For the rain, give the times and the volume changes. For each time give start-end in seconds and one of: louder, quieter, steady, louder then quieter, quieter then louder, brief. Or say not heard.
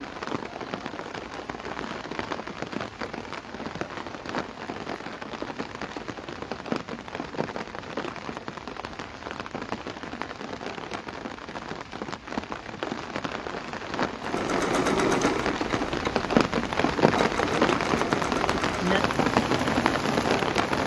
0.0-20.8 louder.